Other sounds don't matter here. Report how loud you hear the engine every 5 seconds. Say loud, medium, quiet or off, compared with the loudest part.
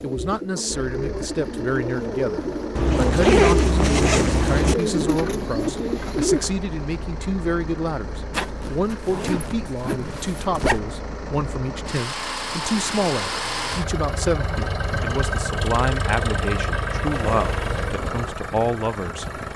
medium, medium, loud, loud.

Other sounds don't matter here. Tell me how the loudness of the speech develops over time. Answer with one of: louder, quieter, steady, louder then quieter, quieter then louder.
steady.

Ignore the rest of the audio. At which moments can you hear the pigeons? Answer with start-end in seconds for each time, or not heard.
0.0-6.5.